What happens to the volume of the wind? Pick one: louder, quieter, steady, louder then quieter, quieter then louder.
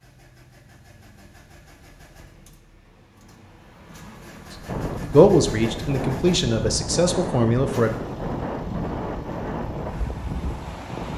steady.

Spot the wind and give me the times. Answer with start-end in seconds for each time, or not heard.
4.7-11.1.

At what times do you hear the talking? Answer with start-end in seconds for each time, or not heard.
5.0-7.9.